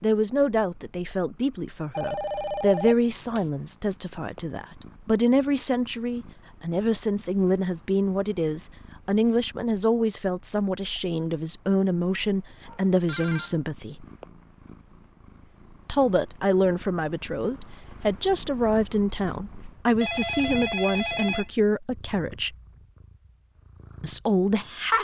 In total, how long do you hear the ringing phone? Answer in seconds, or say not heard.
4 s.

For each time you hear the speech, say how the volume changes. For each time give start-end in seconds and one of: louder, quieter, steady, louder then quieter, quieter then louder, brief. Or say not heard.
0.0-14.1 steady
15.8-22.6 steady
24.0-24.9 brief.